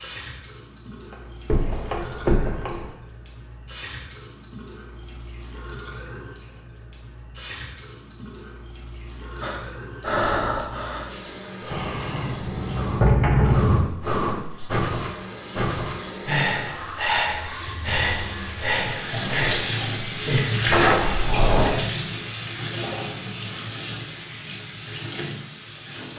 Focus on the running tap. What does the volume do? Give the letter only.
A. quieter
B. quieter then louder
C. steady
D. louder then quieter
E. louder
E.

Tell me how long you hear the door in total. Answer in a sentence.
The door can be heard for 5 seconds in total.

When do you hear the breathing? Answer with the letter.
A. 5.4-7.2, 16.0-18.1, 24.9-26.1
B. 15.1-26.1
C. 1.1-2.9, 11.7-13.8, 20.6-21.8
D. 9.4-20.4
D.